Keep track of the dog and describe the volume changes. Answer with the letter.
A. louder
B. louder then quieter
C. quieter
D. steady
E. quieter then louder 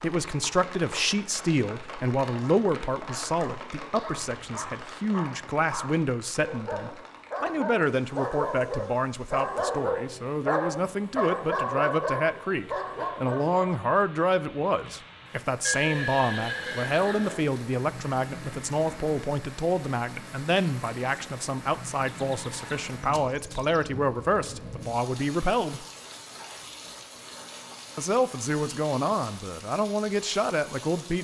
A.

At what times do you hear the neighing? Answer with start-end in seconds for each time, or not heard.
4.2-4.9, 15.7-17.4, 22.1-23.9.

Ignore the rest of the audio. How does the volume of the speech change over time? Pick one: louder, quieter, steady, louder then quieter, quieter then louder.
steady.